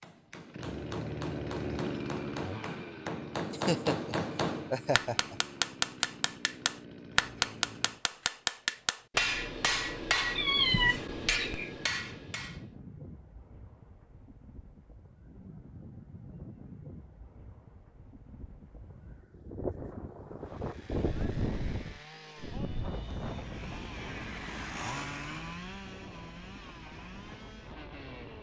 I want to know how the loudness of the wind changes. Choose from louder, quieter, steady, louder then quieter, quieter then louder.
louder then quieter.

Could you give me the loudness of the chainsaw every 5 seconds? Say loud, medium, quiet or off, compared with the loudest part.
loud, medium, off, off, medium, medium.